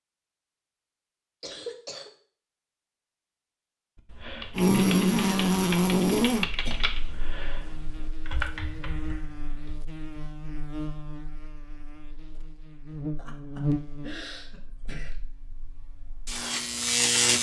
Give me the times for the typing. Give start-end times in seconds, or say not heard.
4.0-9.8.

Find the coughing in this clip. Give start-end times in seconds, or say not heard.
1.4-2.1, 6.1-6.8, 13.2-15.2.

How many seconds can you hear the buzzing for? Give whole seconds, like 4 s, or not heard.
13 s.